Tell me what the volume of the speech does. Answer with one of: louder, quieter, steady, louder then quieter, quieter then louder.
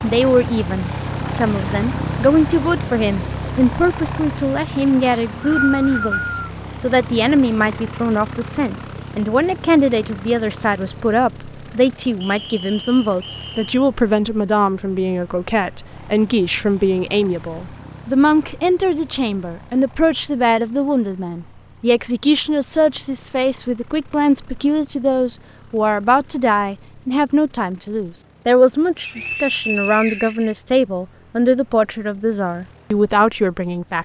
steady.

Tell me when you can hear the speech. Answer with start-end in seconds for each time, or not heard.
0.0-34.0.